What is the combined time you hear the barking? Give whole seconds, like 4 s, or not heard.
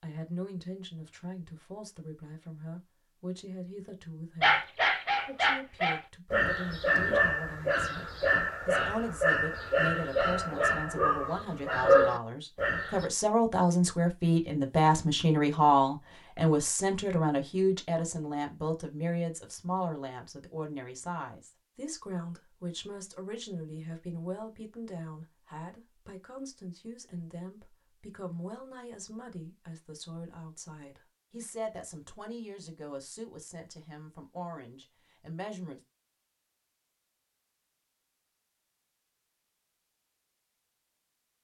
9 s.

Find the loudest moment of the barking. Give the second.
12 s.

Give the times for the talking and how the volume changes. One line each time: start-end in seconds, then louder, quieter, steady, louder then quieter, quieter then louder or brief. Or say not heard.
0.0-35.8 louder then quieter.